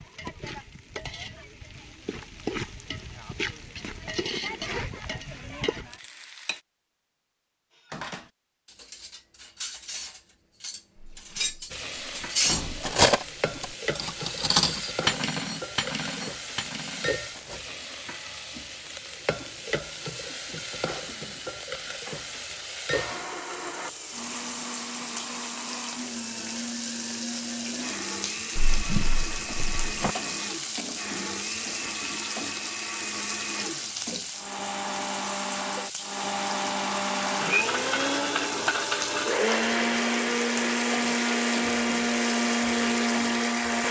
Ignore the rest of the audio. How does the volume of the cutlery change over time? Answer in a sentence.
The volume of the cutlery goes up, then down.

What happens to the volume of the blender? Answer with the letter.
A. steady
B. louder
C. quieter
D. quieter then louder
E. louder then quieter
B.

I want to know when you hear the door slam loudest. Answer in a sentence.
The volume of the door slam peaks at 29 seconds.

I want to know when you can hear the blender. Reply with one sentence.
You can hear the blender from 22.9 to 43.8 s.